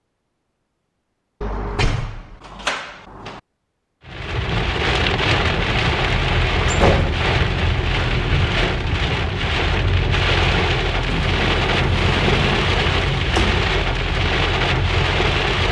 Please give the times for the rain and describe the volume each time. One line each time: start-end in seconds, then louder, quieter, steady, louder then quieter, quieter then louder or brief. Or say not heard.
4.0-15.6 steady.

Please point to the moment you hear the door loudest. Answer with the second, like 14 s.
7 s.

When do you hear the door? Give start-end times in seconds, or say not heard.
1.4-3.4, 6.7-7.2, 11.1-13.7.